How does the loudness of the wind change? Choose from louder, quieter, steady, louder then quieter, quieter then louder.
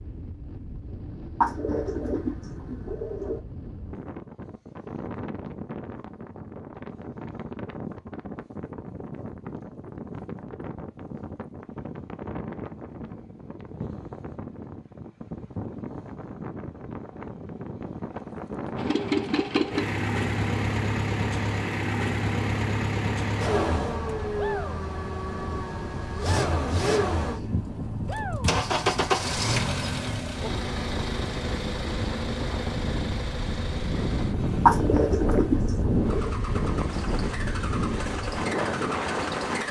louder.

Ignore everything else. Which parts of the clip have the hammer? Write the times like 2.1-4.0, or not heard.
not heard.